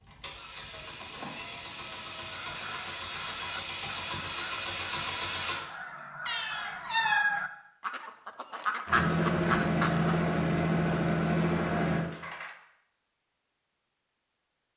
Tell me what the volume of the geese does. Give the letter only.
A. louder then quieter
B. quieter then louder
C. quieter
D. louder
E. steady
D.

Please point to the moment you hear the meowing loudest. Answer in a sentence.
The volume of the meowing peaks at 7 seconds.